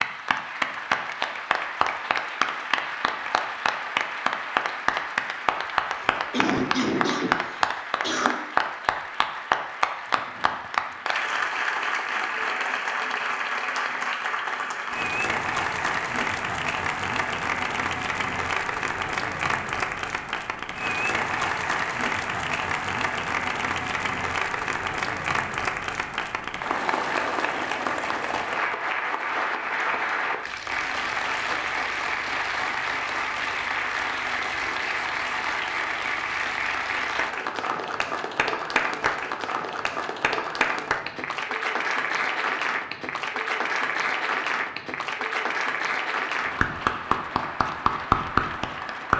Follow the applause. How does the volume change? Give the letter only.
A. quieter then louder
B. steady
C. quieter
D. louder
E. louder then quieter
B.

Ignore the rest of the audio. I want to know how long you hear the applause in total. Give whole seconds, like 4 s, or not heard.
49 s.